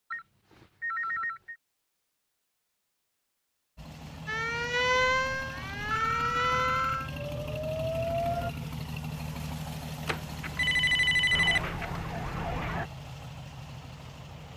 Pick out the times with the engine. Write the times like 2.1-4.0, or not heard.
3.8-14.5.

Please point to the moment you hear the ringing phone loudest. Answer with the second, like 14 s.
11 s.